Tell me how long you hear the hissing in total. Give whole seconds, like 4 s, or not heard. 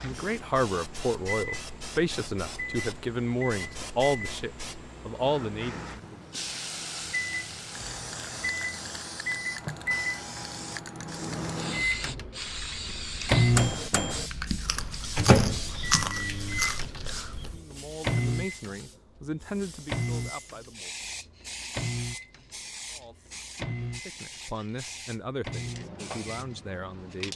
27 s.